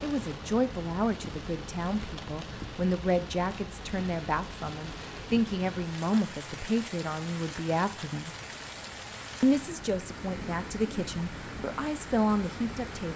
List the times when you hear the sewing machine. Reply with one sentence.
You can't hear the sewing machine here.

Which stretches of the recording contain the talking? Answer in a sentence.
You can hear the talking from 0.0 to 8.3 s and from 9.4 to 13.1 s.